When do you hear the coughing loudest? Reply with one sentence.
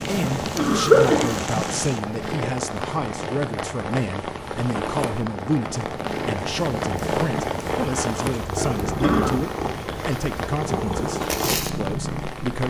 The loudest moment of the coughing is at 1 second.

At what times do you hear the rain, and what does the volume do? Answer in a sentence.
You can hear the rain from 0.0 to 12.6 s, at a steady volume.